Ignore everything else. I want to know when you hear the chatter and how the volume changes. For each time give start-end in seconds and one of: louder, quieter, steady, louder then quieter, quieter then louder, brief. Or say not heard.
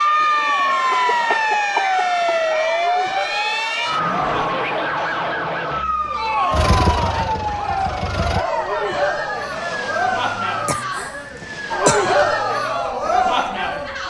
0.1-14.0 louder.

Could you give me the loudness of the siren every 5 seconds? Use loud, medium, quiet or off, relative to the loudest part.
loud, medium, medium.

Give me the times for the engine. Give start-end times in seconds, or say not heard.
6.5-8.4.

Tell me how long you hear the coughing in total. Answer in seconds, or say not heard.
4 s.